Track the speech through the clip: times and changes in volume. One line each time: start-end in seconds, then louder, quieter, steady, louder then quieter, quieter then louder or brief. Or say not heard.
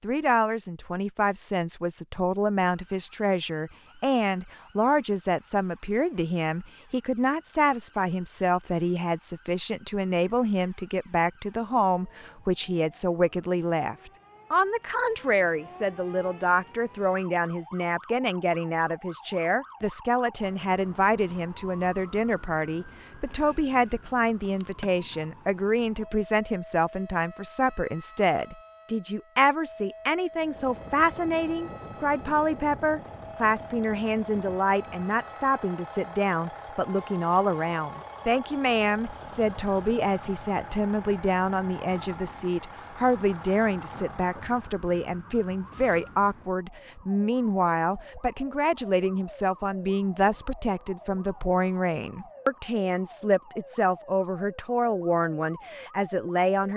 0.0-56.7 steady.